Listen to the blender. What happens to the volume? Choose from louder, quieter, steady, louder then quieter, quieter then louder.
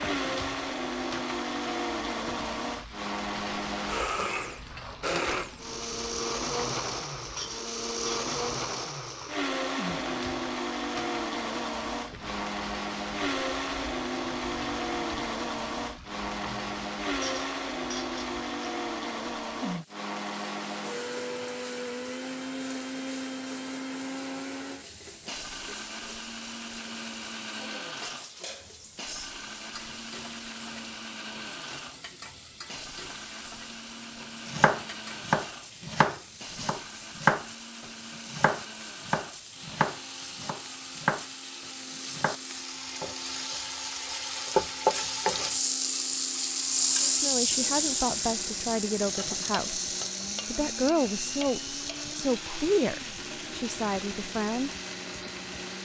quieter.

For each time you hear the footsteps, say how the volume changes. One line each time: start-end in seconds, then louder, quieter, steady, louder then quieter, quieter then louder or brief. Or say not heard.
not heard.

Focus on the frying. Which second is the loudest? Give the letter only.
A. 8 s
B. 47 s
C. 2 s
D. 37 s
B.